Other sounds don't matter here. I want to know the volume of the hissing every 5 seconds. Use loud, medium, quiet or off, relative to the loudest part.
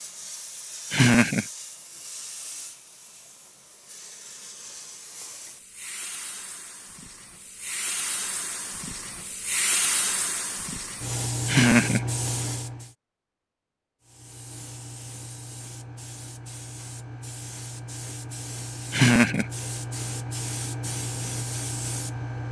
medium, loud, loud, medium, loud.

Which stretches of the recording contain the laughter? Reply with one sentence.
The laughter can be heard from 0.9 to 1.4 s, from 11.4 to 12.1 s and from 18.9 to 19.4 s.